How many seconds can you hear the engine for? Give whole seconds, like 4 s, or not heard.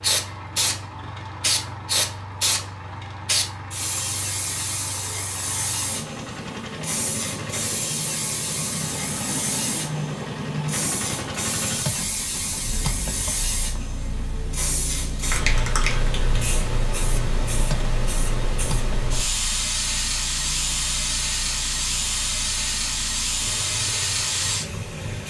25 s.